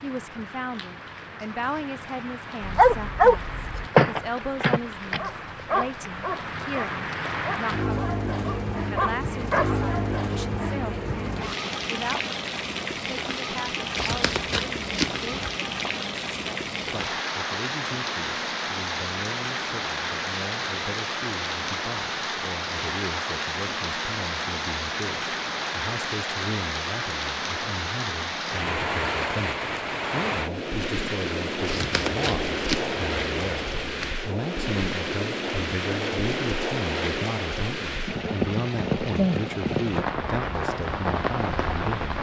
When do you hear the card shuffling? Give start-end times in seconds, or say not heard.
13.9-15.4, 31.6-34.1.